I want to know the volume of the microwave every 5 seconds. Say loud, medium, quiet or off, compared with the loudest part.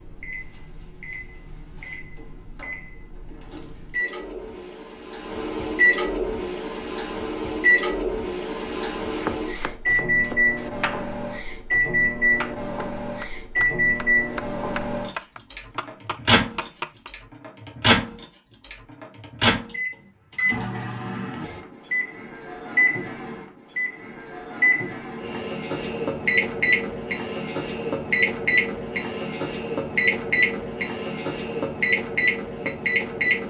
quiet, loud, loud, loud, loud, loud, loud.